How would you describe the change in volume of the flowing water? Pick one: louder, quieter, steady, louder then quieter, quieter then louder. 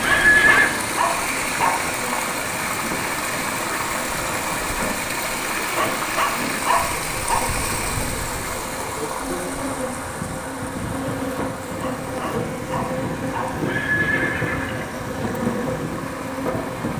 quieter.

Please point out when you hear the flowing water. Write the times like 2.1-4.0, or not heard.
0.0-16.9.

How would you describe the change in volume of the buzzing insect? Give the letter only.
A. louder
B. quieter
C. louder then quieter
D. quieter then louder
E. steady
A.